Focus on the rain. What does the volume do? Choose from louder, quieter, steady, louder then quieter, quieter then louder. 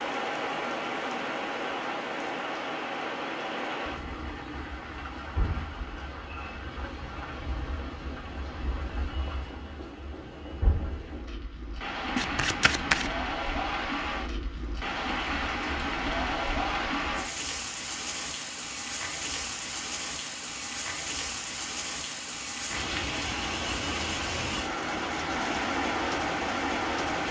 quieter then louder.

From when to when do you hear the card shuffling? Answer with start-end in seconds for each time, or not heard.
12.2-13.2.